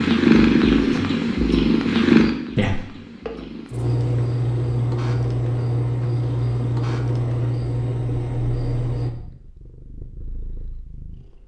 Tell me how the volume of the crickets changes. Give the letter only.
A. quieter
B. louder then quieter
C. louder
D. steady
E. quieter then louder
D.